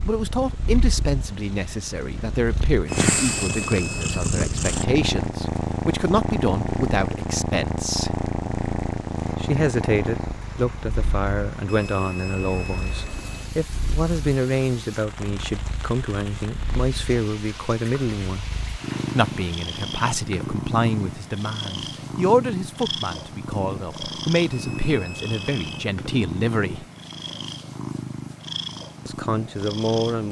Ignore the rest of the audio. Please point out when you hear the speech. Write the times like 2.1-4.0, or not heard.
0.1-8.2, 9.4-18.4, 19.1-26.9, 29.1-30.2.